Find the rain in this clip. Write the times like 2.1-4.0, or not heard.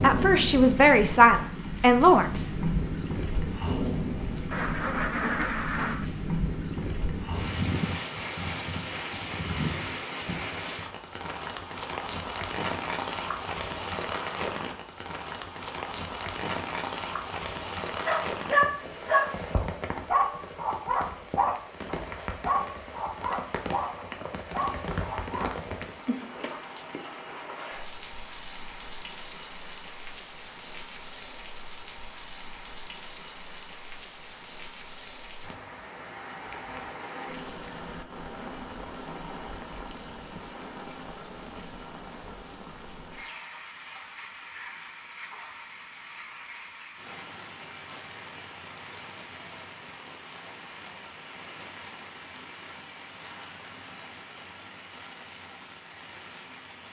0.0-56.8.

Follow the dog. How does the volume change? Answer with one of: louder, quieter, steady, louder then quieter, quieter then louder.
quieter.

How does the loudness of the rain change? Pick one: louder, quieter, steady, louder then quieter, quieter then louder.
quieter.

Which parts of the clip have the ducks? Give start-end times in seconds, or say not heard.
4.5-6.1.